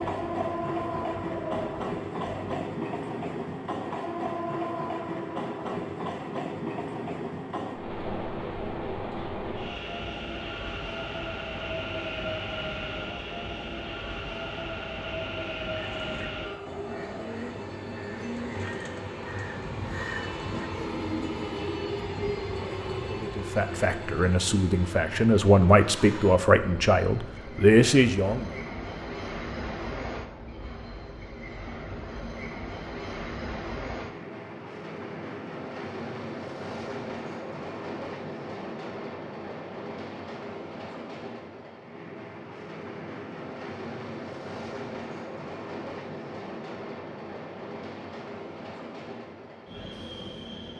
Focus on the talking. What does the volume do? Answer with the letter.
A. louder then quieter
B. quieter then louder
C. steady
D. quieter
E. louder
E.